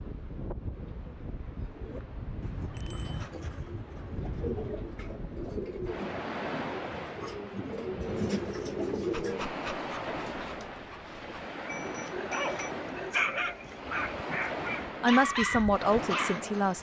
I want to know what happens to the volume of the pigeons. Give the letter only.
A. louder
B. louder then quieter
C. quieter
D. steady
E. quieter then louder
A.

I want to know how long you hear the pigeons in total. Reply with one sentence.
You can hear the pigeons for 8 seconds altogether.